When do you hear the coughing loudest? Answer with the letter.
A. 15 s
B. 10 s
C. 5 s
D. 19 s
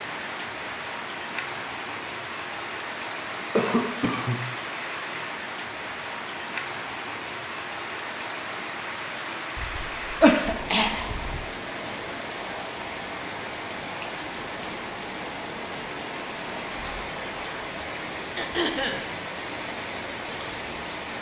B.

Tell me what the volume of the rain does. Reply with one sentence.
The loudness of the rain stays about the same.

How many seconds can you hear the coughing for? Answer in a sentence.
The coughing can be heard for 3 seconds in total.